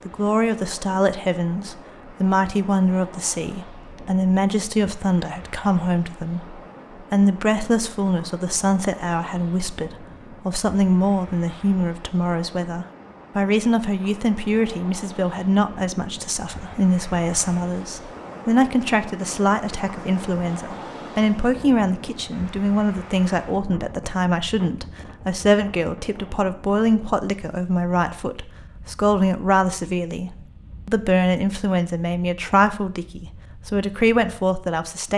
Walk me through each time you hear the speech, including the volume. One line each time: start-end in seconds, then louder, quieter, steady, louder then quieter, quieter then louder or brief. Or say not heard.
0.1-35.1 steady.